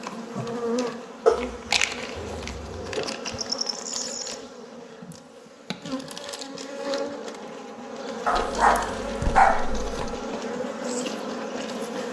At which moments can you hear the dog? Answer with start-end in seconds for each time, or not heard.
1.2-3.0, 8.2-10.2.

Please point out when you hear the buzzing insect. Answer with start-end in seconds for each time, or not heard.
0.0-12.0.